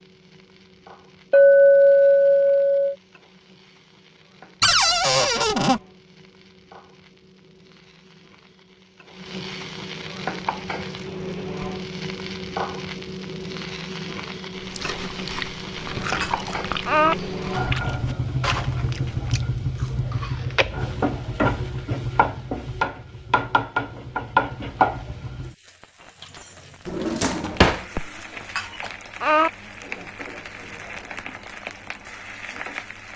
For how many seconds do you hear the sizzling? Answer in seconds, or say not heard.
33 s.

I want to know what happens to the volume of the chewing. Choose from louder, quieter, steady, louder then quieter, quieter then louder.
quieter.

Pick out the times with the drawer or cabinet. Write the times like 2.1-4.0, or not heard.
4.6-5.8, 15.8-16.6, 26.9-27.9.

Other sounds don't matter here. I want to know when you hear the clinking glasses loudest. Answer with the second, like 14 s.
2 s.